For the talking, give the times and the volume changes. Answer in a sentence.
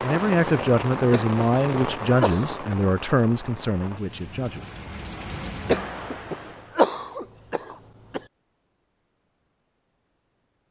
You can hear the talking from 0.0 to 4.7 s, getting quieter.